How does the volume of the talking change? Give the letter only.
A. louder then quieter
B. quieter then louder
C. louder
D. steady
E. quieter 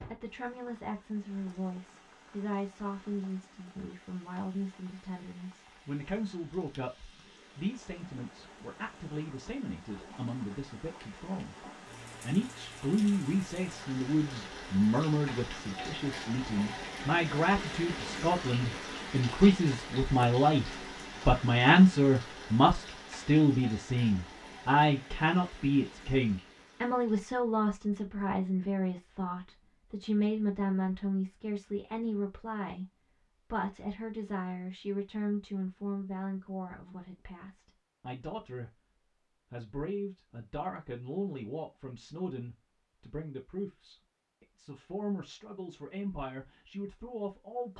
A.